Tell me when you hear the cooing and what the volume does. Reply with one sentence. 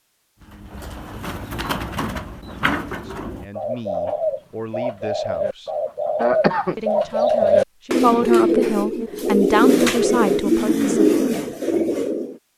You can hear the cooing from 0.4 to 12.3 s, getting louder.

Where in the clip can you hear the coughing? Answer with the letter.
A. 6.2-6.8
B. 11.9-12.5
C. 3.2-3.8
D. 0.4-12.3
A.